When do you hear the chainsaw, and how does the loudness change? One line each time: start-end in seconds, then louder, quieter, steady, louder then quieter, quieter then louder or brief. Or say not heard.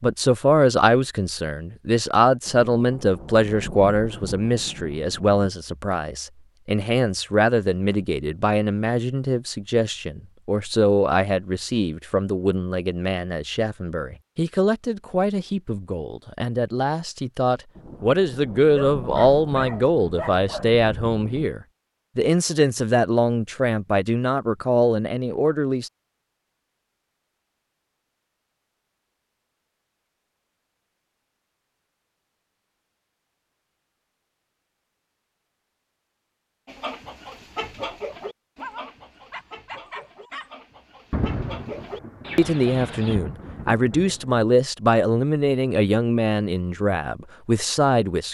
not heard.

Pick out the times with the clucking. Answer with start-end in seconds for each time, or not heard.
36.6-43.1.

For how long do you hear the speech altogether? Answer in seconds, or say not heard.
32 s.